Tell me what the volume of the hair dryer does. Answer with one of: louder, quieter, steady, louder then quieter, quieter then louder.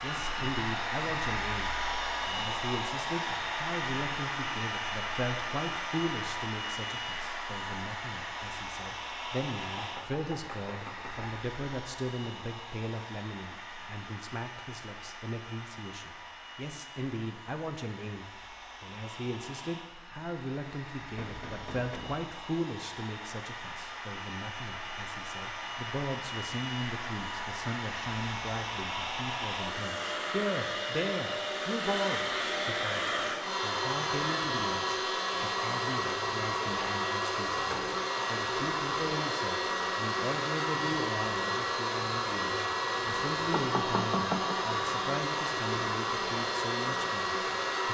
quieter then louder.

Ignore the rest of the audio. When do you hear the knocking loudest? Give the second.
44 s.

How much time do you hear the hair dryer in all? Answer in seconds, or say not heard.
48 s.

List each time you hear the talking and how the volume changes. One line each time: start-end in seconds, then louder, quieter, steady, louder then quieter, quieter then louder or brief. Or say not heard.
0.0-47.8 steady.